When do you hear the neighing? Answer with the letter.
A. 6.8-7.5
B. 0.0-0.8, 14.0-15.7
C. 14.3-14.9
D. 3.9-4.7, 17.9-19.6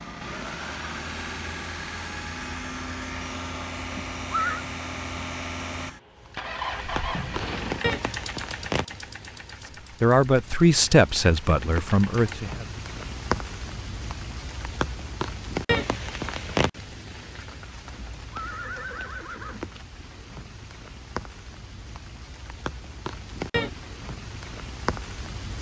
D.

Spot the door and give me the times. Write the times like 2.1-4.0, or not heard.
6.8-7.5.